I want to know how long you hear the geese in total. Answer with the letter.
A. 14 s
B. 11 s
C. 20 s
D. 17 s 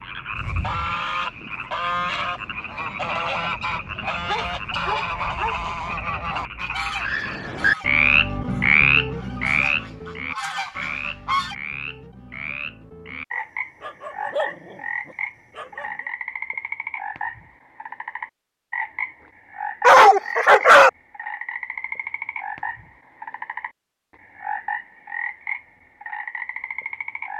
B.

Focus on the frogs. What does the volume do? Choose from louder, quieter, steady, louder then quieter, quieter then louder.
louder then quieter.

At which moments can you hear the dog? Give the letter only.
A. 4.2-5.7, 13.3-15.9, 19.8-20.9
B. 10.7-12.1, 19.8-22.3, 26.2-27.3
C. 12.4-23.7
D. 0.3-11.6
A.